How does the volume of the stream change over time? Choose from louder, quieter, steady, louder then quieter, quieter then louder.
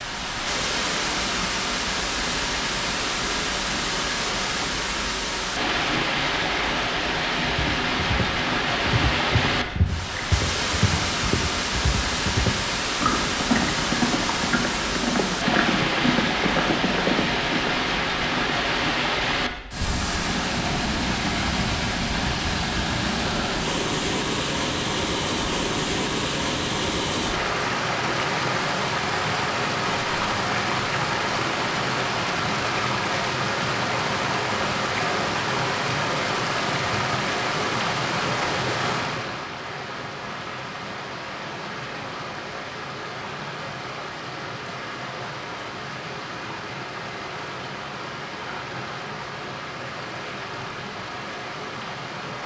quieter.